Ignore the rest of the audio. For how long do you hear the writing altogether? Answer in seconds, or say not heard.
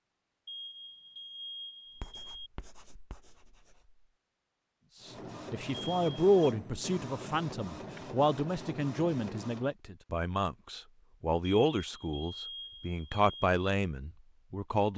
2 s.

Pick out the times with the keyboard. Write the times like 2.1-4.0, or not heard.
not heard.